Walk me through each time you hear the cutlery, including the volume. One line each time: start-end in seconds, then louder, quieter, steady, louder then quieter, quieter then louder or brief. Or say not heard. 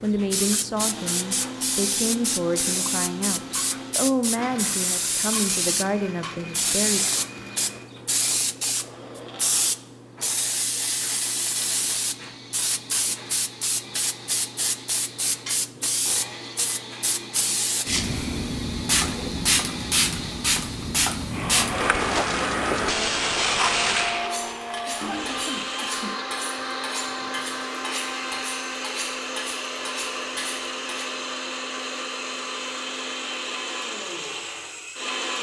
24.2-31.1 steady.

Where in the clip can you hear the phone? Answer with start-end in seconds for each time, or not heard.
not heard.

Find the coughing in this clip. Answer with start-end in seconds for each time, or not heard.
24.9-26.2.